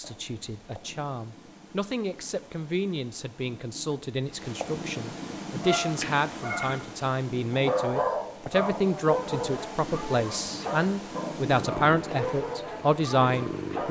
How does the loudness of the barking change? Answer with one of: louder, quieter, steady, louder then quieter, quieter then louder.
louder then quieter.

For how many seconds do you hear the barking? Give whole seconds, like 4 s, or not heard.
8 s.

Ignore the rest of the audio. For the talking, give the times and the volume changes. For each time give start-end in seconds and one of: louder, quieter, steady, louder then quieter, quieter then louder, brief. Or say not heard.
0.0-13.8 louder.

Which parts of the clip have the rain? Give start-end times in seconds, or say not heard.
not heard.